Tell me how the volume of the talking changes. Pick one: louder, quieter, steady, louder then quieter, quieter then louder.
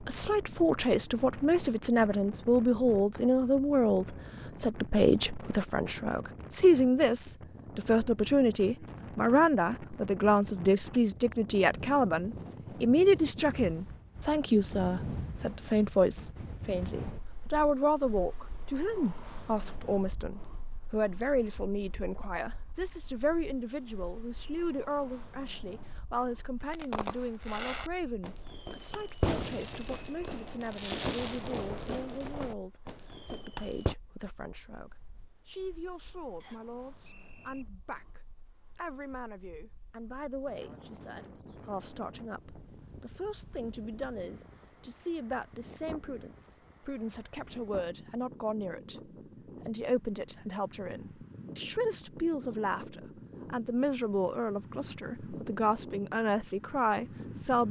quieter then louder.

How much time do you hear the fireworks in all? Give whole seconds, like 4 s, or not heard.
7 s.